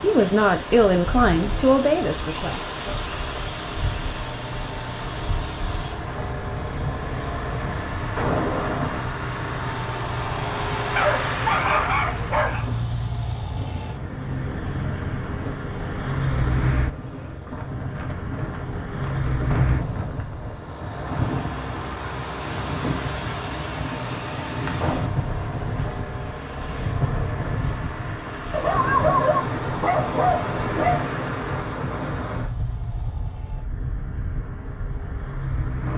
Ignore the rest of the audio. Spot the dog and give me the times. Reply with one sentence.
You can hear the dog from 10.9 to 12.7 s and from 28.5 to 31.1 s.